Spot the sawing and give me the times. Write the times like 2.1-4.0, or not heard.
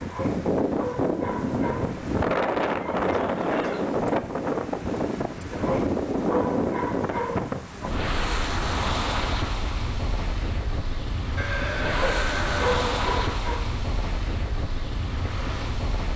not heard.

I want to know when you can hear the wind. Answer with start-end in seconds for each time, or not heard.
0.0-16.1.